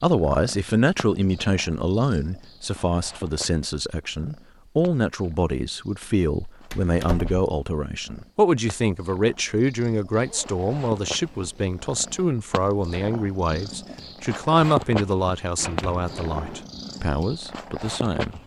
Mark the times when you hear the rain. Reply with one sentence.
You can't hear the rain here.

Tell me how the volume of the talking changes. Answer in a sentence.
The loudness of the talking stays about the same.